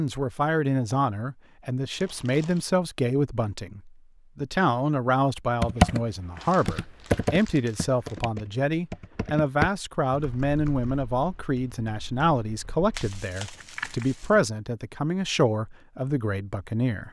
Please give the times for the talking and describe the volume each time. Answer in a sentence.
The talking can be heard from 0.0 to 17.0 s, at a steady volume.